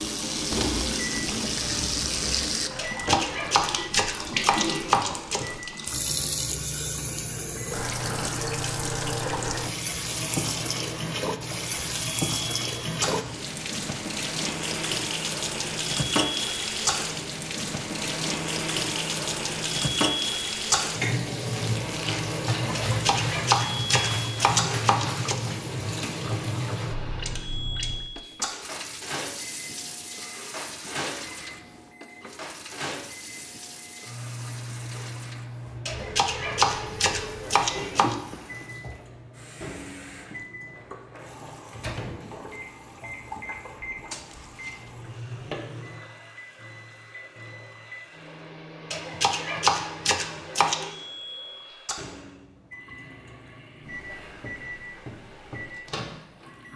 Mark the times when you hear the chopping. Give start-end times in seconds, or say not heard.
2.8-5.5, 22.8-25.4, 35.9-38.1, 48.9-51.0.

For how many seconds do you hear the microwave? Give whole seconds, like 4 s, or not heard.
57 s.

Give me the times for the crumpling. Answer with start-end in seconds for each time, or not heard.
0.5-2.5, 21.6-22.2, 44.1-44.9.